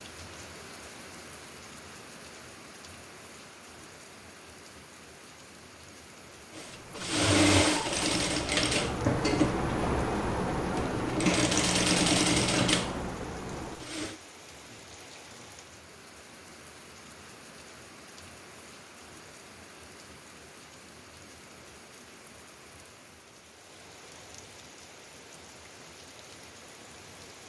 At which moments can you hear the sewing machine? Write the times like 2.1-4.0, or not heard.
6.5-14.2.